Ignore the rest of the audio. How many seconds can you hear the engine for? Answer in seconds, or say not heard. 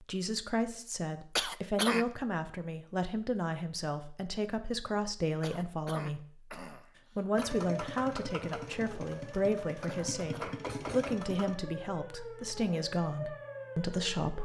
4 s.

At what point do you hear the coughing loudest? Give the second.
2 s.